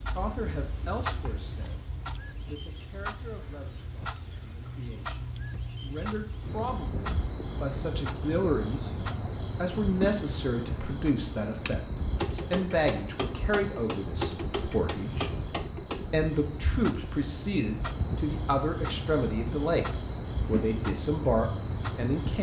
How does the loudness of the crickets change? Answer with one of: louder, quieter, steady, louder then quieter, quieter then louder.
steady.